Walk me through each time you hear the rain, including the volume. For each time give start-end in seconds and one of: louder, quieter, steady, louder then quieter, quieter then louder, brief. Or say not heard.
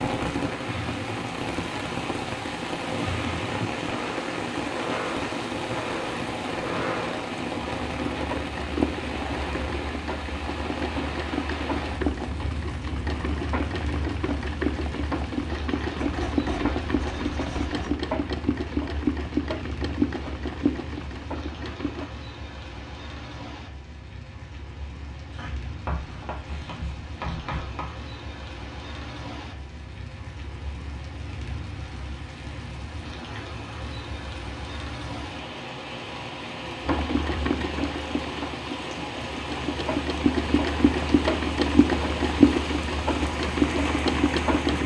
0.0-44.8 quieter then louder.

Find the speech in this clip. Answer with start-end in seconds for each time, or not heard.
not heard.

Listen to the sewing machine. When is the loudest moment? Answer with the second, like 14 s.
42 s.